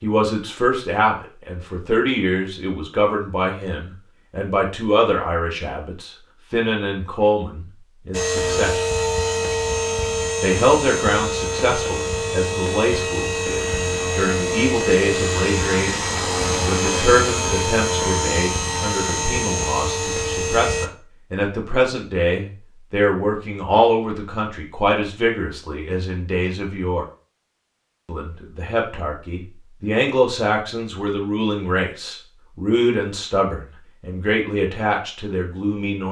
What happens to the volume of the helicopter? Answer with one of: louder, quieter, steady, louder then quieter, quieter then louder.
steady.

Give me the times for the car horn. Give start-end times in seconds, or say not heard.
not heard.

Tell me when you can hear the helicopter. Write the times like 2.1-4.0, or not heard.
8.1-20.9.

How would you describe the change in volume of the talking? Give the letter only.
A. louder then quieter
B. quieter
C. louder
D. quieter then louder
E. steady
E.